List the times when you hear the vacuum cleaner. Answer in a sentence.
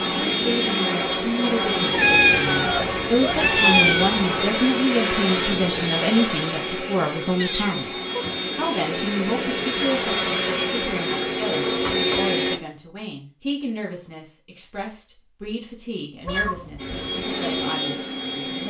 The vacuum cleaner can be heard from 0.0 to 12.6 s and from 16.8 to 18.6 s.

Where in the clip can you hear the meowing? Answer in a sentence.
You can hear the meowing from 1.9 to 4.2 s, from 7.3 to 8.2 s and from 16.2 to 17.0 s.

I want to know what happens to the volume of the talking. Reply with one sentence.
The volume of the talking goes down.